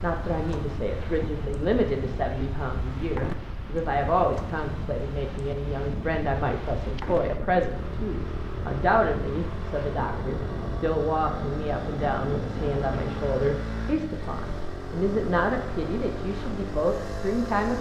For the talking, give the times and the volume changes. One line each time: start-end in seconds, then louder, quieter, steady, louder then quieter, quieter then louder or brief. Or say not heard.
0.0-17.7 steady.